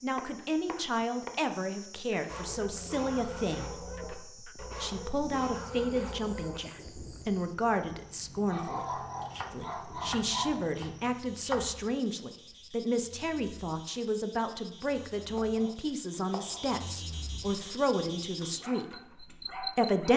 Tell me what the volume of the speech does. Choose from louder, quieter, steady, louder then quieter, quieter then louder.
steady.